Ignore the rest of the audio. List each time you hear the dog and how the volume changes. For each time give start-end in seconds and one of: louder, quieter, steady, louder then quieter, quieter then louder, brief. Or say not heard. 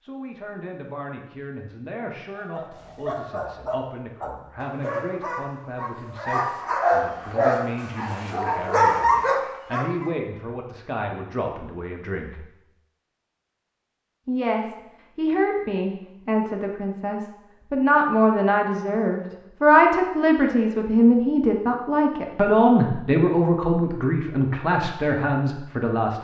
2.4-10.1 louder.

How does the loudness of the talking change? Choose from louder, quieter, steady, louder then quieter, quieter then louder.
louder.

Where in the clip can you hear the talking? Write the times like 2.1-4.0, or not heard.
0.0-12.4, 14.2-26.2.